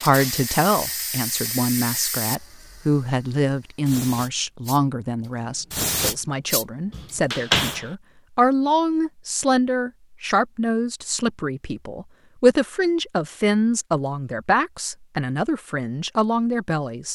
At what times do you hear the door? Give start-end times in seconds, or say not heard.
6.9-7.8.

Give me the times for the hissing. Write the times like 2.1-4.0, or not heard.
0.0-7.8.